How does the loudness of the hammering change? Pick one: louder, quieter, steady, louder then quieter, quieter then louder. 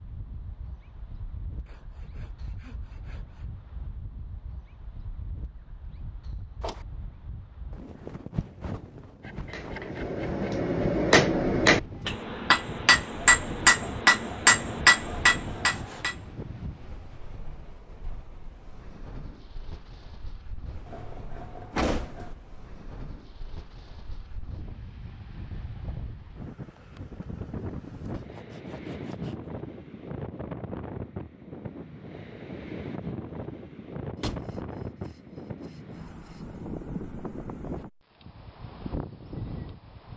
louder.